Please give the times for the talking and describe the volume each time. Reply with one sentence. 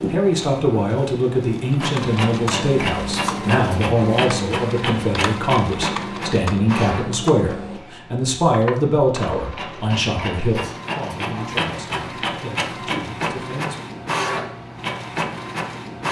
You can hear the talking from 0.1 to 13.8 s, getting quieter.